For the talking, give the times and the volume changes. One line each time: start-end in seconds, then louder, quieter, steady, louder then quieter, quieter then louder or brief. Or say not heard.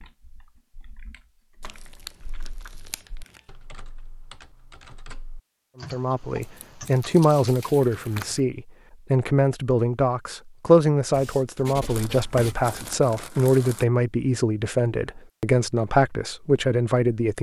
5.8-17.3 steady.